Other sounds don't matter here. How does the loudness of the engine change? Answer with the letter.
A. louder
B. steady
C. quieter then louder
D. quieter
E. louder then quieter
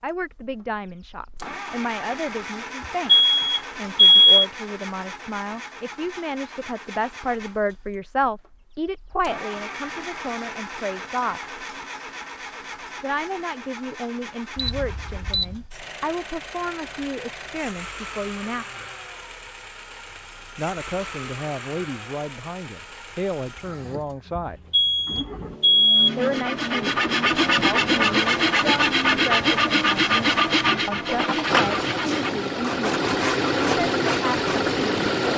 A.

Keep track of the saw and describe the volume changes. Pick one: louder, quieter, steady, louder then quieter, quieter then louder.
quieter.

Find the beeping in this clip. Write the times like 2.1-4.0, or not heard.
3.0-4.5, 14.6-15.6, 24.7-26.1.